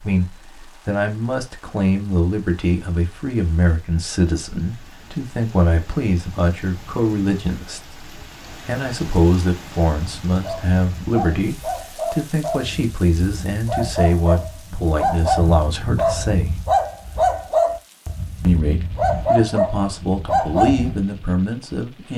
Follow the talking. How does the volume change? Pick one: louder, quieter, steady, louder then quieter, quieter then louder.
steady.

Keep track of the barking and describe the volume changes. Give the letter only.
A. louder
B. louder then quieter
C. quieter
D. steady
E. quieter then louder
A.